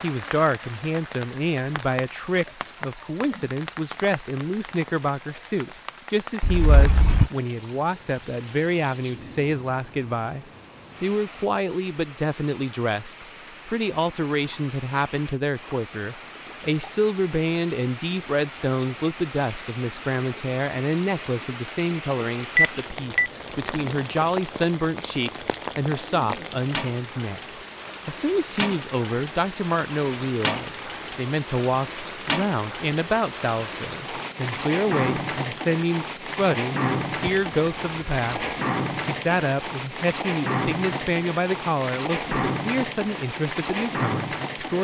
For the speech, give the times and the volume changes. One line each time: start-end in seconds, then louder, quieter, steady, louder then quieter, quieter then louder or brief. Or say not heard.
0.0-44.7 steady.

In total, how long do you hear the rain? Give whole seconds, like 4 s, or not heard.
45 s.